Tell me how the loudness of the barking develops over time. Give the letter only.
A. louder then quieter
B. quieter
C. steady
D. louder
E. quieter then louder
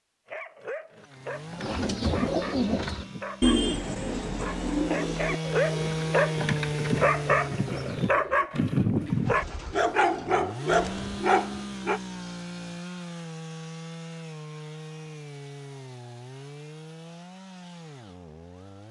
D.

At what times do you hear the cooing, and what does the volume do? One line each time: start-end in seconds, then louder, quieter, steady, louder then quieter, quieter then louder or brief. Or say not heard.
1.6-11.2 quieter.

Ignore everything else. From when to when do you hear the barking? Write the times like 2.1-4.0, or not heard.
0.2-12.0.